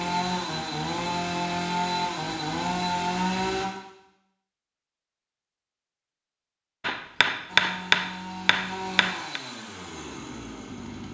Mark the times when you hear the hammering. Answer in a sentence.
You can hear the hammering from 6.8 to 9.4 s.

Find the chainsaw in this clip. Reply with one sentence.
You can hear the chainsaw from 0.0 to 3.7 s and from 7.5 to 11.0 s.